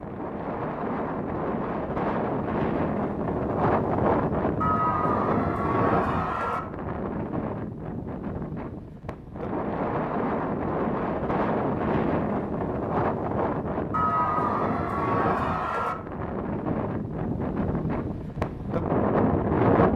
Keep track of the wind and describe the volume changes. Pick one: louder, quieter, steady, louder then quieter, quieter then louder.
steady.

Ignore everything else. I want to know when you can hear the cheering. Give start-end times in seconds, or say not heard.
4.6-6.6, 13.9-15.9.